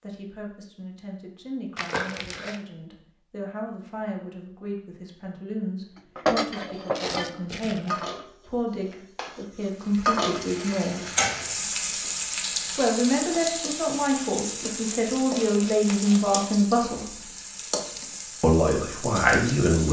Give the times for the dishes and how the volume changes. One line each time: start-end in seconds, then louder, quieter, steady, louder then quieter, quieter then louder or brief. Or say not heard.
6.2-11.1 quieter then louder.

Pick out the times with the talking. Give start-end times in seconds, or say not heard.
0.0-11.1, 12.8-17.2, 18.4-19.8.